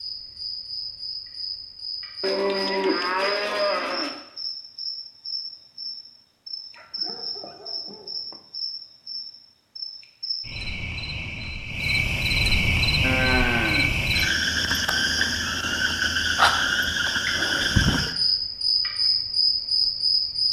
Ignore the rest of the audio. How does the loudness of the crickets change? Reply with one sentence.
The loudness of the crickets goes up.